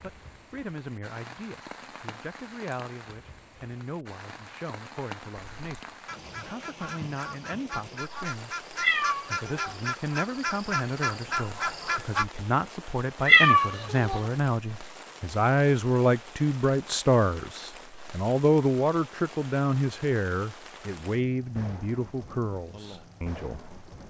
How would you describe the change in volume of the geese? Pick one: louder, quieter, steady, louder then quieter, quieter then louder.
louder.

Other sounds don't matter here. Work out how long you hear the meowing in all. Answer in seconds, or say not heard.
2 s.